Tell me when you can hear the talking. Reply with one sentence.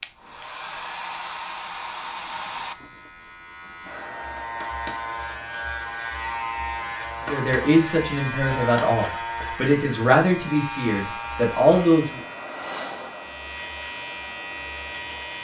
You can hear the talking from 7.2 to 12.2 s.